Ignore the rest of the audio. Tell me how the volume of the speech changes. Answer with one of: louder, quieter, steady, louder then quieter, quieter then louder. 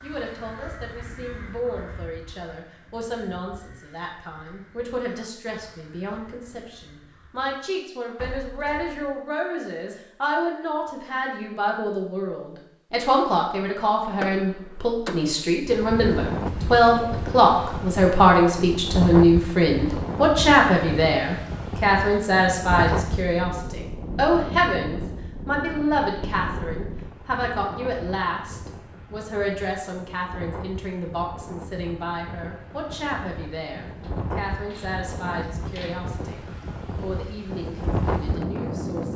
louder then quieter.